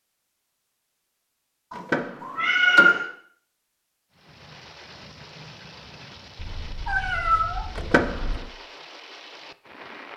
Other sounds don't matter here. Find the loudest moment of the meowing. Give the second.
3 s.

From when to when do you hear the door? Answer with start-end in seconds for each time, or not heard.
1.7-3.0, 7.8-8.4.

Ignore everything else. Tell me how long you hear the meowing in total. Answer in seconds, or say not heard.
3 s.